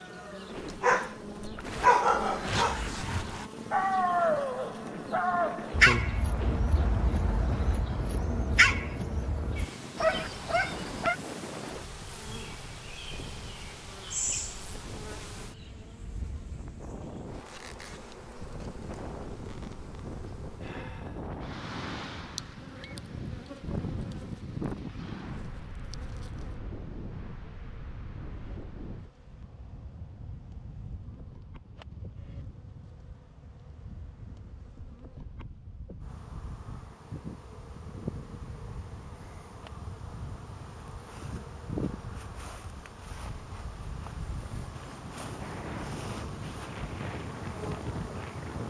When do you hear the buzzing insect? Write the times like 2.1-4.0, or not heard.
0.0-48.6.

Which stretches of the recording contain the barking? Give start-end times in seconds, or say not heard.
0.6-11.2.